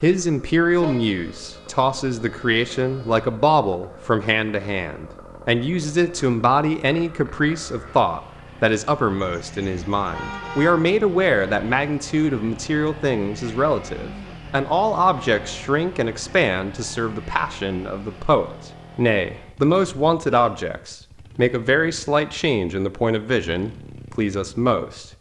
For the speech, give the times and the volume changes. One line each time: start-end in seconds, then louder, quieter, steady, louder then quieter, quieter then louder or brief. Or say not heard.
0.0-25.1 steady.